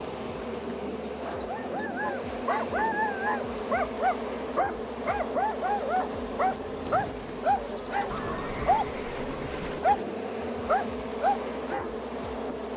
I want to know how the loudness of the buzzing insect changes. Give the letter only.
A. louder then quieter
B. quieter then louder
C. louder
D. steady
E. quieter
D.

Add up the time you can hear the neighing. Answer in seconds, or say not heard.
2 s.